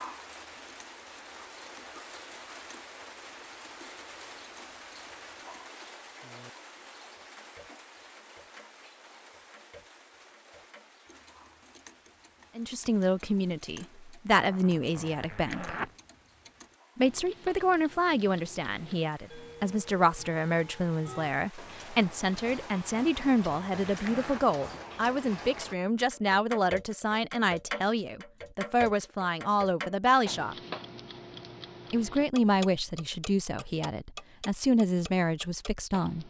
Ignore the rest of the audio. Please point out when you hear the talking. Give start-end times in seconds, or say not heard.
12.6-15.8, 16.9-30.6, 31.9-36.2.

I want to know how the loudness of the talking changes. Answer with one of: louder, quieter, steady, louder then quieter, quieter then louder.
steady.